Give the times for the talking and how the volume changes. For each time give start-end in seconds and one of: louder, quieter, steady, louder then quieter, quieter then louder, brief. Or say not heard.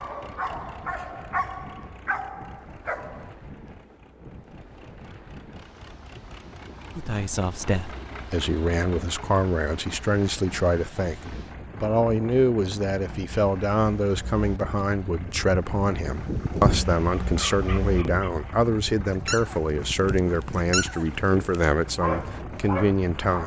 7.0-23.4 steady.